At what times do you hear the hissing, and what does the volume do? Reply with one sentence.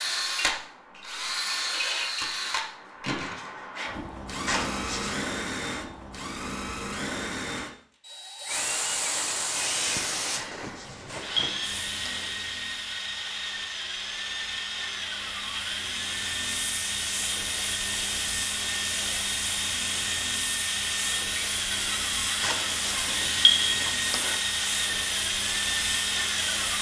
You can hear the hissing from 8.4 to 26.7 s, getting quieter then louder.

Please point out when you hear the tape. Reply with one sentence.
You can't hear the tape here.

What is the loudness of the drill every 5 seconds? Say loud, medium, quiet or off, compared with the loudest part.
loud, medium, medium, loud, loud, loud.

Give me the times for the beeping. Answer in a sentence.
You can hear the beeping from 4.5 to 5.3 s, from 10.3 to 12.3 s and from 22.4 to 24.4 s.